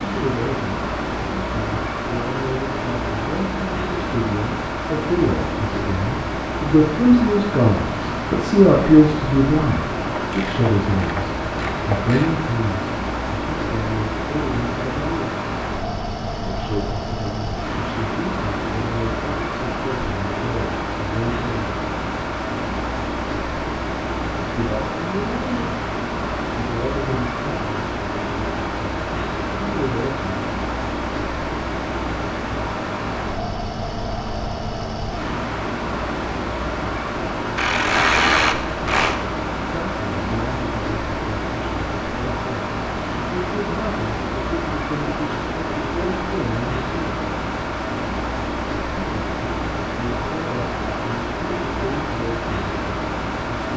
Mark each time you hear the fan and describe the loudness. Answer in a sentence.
The fan can be heard from 0.0 to 53.7 s, at a steady volume.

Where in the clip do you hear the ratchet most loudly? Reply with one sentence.
The volume of the ratchet peaks at 38 seconds.